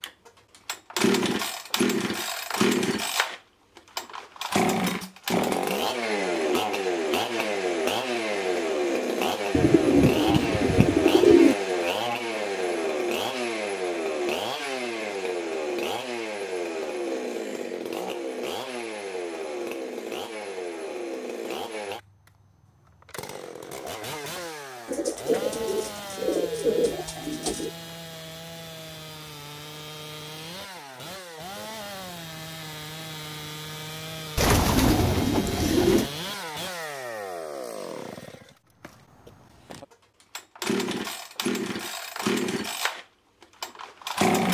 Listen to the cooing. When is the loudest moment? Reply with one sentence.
The volume of the cooing peaks at 11 seconds.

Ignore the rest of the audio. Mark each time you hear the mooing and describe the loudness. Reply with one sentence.
The mooing can't be heard in this clip.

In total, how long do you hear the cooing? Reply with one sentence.
You can hear the cooing for 7 seconds altogether.